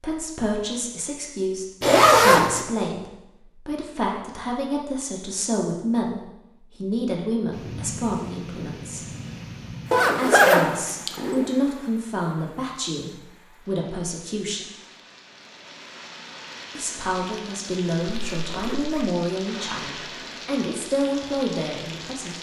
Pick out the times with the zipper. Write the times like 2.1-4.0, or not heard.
1.8-2.6, 9.9-11.4, 18.1-19.1.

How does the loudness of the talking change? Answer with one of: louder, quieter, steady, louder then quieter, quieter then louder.
steady.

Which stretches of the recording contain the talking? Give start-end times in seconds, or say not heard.
0.0-9.1, 10.2-14.7, 16.8-22.3.